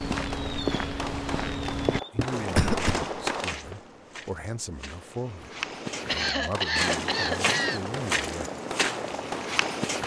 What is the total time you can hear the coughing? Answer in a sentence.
The coughing can be heard for 3 seconds in total.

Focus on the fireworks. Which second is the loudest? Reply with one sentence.
The loudest moment of the fireworks is at 3 seconds.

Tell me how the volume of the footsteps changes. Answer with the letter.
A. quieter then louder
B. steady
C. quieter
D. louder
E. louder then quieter
A.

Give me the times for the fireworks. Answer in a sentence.
You can hear the fireworks from 0.0 to 3.5 s and from 6.4 to 10.0 s.